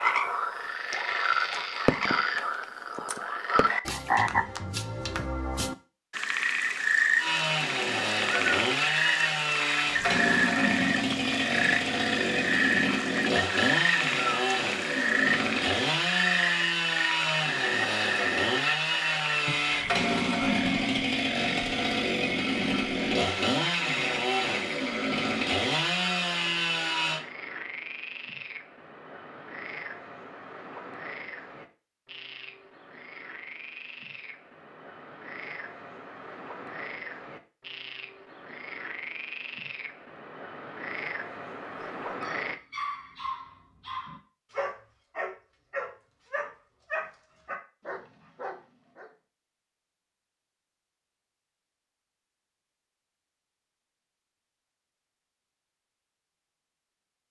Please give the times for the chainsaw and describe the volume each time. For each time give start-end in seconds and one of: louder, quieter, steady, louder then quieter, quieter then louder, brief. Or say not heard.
7.2-27.2 steady.